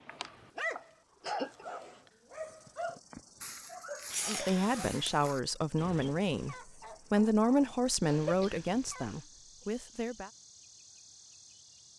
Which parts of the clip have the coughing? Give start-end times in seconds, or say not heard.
0.1-1.8, 4.1-5.3, 8.1-9.7.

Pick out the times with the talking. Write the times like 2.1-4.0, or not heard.
4.2-10.3.